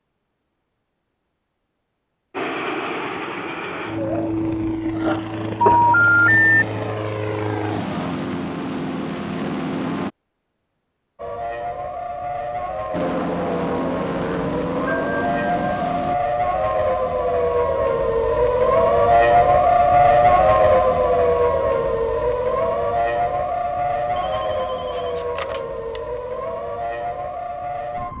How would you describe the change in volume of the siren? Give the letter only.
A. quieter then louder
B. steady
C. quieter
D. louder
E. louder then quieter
E.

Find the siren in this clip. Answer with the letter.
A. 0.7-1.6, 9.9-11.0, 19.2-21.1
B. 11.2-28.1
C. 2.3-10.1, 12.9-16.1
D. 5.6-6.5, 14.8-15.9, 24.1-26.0
B.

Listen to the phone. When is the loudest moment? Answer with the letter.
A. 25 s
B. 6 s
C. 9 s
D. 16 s
B.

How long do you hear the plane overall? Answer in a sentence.
The plane can be heard for 11 seconds in total.